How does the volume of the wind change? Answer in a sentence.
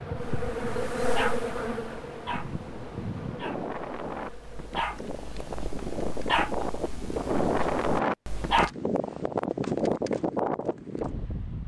The loudness of the wind goes up.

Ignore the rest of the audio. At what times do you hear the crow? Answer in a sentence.
You can't hear the crow here.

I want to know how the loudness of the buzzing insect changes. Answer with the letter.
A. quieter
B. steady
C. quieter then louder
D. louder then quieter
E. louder
A.